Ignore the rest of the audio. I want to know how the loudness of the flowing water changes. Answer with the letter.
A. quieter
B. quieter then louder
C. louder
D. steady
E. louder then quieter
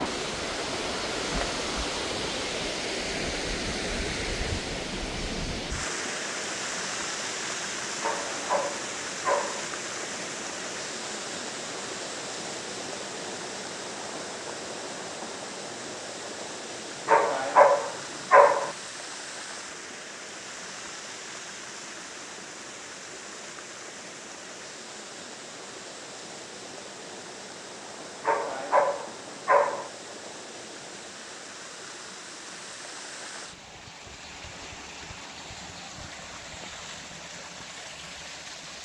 A.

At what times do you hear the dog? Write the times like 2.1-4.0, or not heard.
8.0-9.7, 17.1-18.8, 28.2-29.9.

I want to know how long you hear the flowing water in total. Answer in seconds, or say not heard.
39 s.